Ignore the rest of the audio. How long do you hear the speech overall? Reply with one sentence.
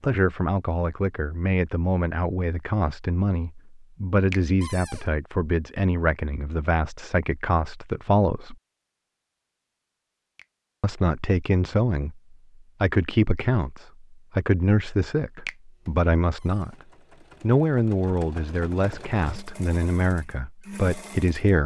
You can hear the speech for 19 seconds altogether.